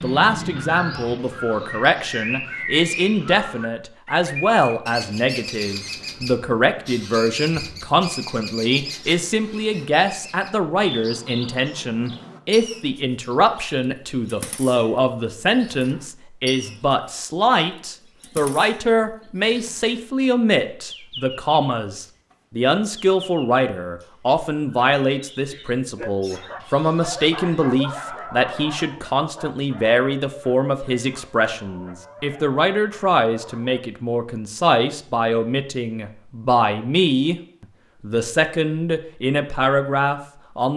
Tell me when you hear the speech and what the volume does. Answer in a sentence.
You can hear the speech from 0.0 to 40.7 s, at a steady volume.